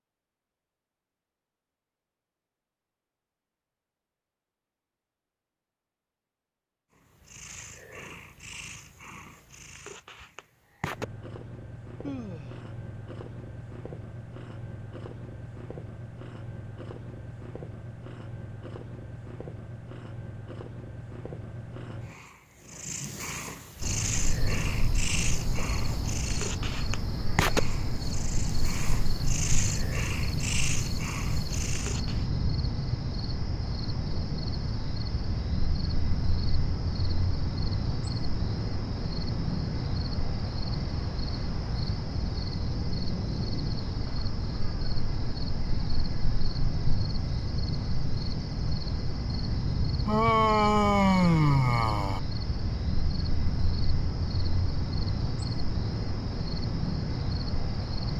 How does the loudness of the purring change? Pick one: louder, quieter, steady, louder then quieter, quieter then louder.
louder.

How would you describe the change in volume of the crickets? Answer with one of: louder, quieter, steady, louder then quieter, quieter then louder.
steady.